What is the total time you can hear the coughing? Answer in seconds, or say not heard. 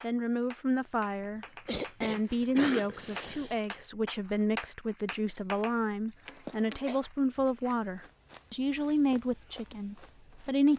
3 s.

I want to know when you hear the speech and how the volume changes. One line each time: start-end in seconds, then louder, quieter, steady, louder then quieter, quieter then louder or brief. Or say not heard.
0.0-10.7 steady.